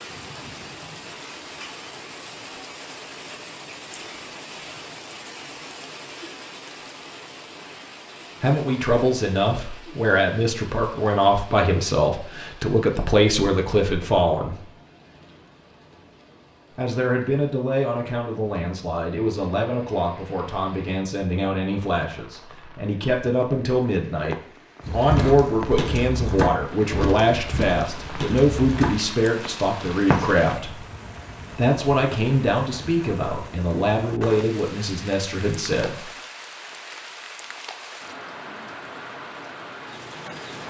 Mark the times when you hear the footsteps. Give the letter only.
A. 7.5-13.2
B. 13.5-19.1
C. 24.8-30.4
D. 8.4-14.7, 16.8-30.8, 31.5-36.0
C.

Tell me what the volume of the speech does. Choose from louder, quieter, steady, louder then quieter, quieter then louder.
steady.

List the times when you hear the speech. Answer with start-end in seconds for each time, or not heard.
8.4-14.7, 16.8-30.8, 31.5-36.0.